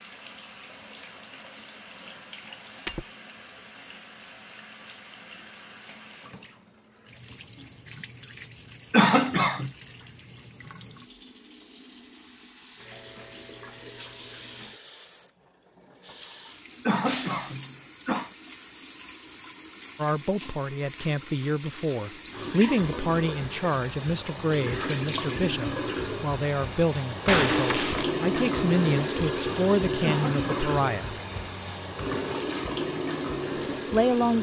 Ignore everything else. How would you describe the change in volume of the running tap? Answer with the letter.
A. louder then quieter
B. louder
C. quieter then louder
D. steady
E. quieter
B.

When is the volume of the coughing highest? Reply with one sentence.
The volume of the coughing peaks at 9 seconds.